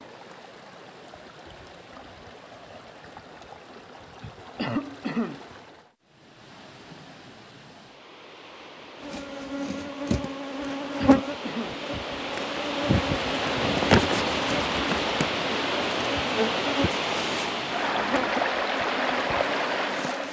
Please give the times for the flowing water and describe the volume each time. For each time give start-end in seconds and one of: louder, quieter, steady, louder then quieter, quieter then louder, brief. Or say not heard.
0.0-20.2 louder.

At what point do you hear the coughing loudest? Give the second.
5 s.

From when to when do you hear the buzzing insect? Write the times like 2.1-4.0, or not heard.
9.0-20.2.